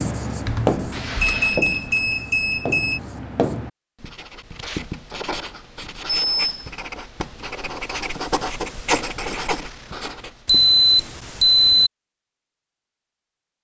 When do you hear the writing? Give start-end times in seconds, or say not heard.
0.0-10.7.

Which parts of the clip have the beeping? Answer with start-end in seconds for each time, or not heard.
0.5-3.0, 6.2-6.7, 10.4-11.9.